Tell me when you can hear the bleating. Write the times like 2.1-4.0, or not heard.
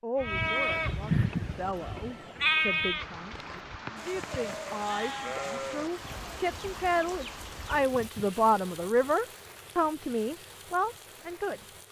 0.2-8.3.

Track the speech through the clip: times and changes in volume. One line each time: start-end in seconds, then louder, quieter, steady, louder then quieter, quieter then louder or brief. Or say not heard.
0.0-11.7 louder.